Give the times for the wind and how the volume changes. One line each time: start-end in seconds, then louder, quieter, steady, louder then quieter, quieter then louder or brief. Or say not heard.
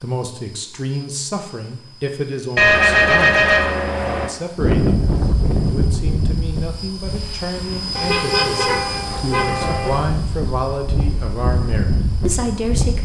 4.5-13.0 quieter then louder.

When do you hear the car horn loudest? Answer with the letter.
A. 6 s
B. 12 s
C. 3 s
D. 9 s
C.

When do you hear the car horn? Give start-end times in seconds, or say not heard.
2.5-4.3, 8.0-9.9.